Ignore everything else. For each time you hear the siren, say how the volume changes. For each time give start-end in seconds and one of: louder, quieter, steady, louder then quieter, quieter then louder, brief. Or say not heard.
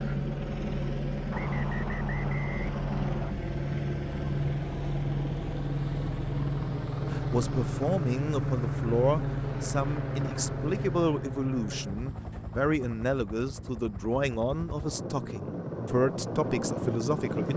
not heard.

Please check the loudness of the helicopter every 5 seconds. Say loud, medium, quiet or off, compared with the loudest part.
loud, loud, medium, loud.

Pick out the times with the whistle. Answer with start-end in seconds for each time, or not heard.
1.3-3.4.